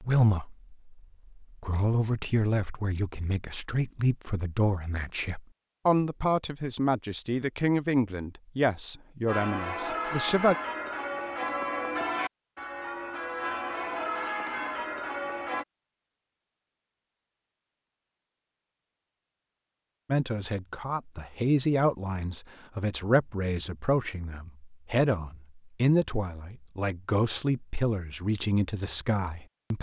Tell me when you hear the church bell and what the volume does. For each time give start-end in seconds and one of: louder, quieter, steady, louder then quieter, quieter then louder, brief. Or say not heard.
9.2-15.7 steady.